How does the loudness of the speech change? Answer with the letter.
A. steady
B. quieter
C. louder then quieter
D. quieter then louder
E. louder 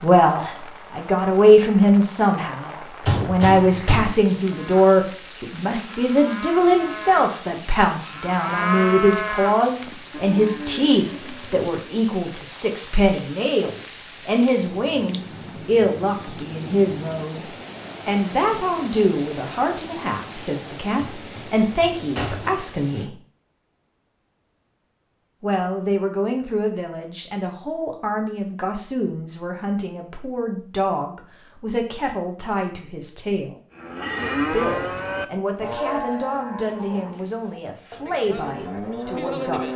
B.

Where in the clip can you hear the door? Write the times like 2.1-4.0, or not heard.
3.0-4.2, 20.9-22.6.